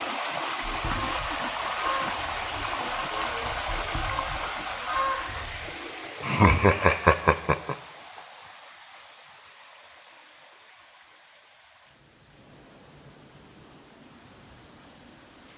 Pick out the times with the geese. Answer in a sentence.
You can hear the geese from 0.6 to 5.7 s.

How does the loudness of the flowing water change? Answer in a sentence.
The loudness of the flowing water goes down.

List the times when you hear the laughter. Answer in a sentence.
The laughter can be heard from 6.2 to 7.8 s.